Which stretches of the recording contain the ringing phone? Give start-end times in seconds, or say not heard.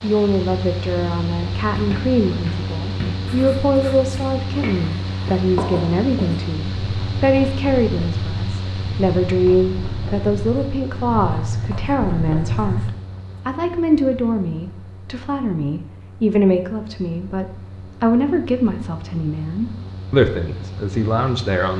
not heard.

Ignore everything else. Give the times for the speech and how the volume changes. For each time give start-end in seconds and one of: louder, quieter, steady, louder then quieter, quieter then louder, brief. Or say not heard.
0.0-21.7 steady.